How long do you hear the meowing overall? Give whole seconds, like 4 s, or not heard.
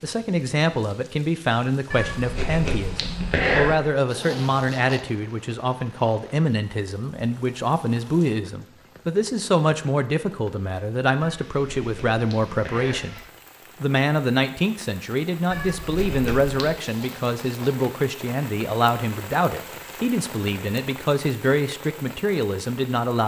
5 s.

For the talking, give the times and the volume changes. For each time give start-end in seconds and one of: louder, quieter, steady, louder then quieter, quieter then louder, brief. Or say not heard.
0.0-13.2 steady
13.8-23.2 steady.